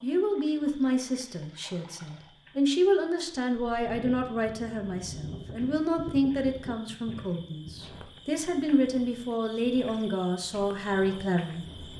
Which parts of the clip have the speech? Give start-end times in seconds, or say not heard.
0.0-11.7.